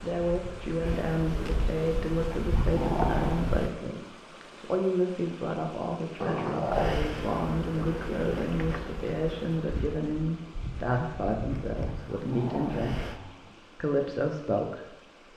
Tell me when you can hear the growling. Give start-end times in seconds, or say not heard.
2.3-3.5, 6.2-7.0, 11.9-13.6.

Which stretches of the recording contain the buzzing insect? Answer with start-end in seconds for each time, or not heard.
0.1-3.7, 6.7-13.2.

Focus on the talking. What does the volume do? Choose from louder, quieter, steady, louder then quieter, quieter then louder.
steady.